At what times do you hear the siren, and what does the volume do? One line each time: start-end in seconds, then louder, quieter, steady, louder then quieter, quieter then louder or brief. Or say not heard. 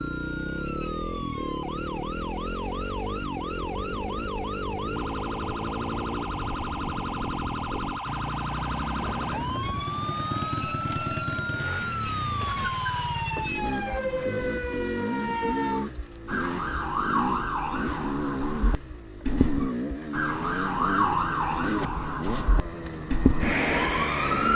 0.0-24.5 louder.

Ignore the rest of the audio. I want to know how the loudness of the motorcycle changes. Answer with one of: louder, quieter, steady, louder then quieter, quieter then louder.
steady.